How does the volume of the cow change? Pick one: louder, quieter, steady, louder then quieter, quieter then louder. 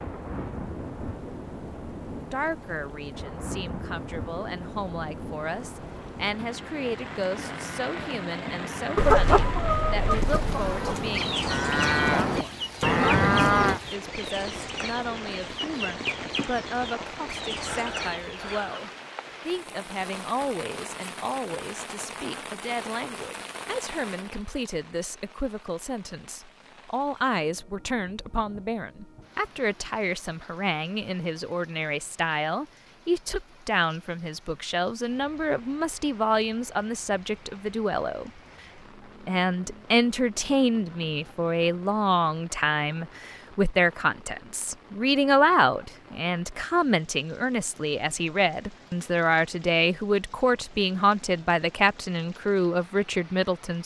louder.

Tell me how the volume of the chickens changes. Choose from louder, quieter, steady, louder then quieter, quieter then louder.
quieter.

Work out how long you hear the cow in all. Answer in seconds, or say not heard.
8 s.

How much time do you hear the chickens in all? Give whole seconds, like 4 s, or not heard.
10 s.